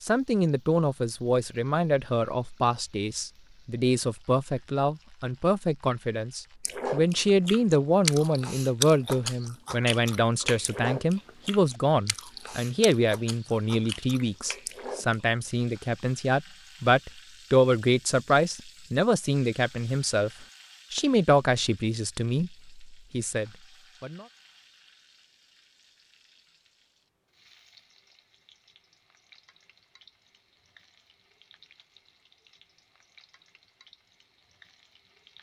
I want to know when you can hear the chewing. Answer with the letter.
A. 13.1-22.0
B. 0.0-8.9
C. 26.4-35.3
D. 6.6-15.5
D.